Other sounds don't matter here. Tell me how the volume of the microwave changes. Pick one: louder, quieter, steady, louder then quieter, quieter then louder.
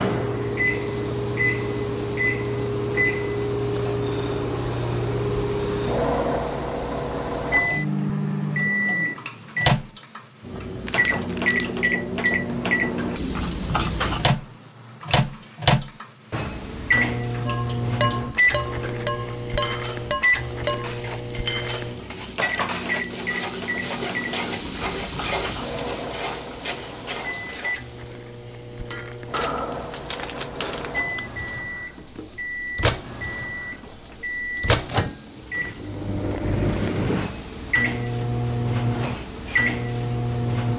quieter then louder.